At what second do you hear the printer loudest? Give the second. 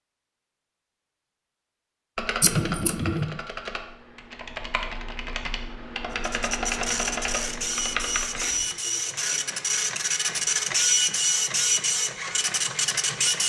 11 s.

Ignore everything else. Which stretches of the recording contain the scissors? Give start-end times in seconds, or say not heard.
2.4-3.4, 7.9-8.8.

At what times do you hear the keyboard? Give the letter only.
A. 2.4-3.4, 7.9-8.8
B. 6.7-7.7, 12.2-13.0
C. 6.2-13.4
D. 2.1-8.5
D.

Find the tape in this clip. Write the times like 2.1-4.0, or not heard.
not heard.